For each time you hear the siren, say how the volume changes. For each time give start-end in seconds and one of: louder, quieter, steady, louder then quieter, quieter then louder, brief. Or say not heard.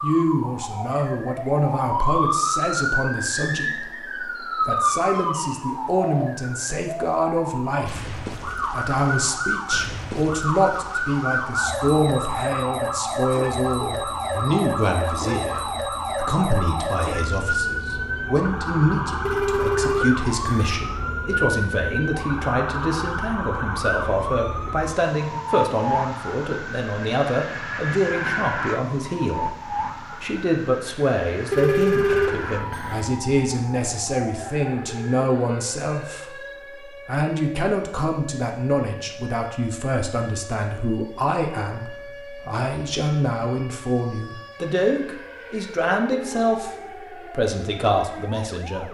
0.0-48.8 quieter.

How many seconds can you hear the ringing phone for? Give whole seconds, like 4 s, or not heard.
3 s.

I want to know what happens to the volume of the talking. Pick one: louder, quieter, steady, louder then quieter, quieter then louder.
steady.